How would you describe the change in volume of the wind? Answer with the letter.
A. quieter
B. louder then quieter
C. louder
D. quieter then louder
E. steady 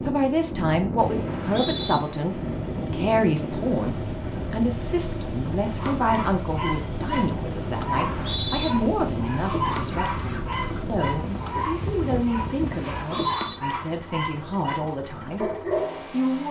E.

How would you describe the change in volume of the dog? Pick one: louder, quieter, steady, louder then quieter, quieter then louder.
steady.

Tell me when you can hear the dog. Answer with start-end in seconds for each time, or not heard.
5.8-16.1.